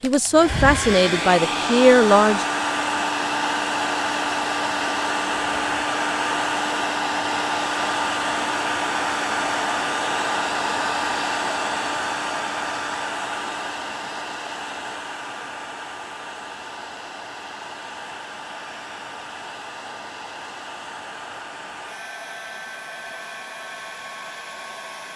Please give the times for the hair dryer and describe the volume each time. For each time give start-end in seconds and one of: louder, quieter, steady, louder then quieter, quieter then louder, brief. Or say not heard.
0.0-25.1 quieter.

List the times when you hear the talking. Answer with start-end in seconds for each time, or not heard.
0.0-2.5.